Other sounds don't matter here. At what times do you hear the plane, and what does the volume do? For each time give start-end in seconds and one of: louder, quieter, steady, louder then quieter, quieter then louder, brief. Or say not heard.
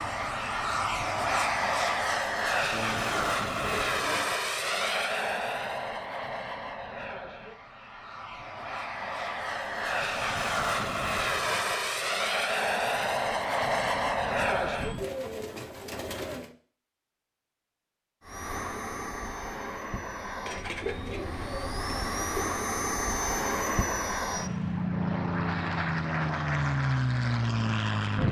0.0-15.1 quieter then louder
18.2-28.2 louder.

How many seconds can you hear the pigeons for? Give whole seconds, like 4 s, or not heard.
5 s.